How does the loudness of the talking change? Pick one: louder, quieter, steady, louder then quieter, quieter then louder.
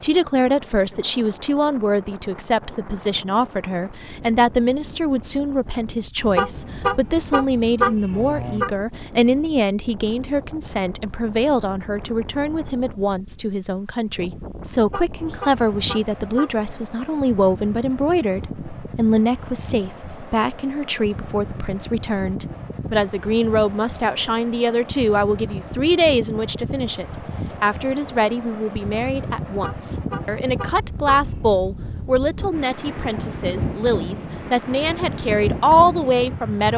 steady.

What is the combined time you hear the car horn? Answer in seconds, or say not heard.
6 s.